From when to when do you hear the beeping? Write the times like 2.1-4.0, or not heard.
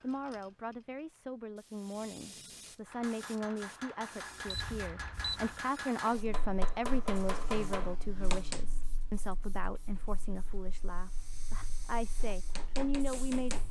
4.5-5.7.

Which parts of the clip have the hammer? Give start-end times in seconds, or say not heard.
2.9-8.7, 12.2-13.6.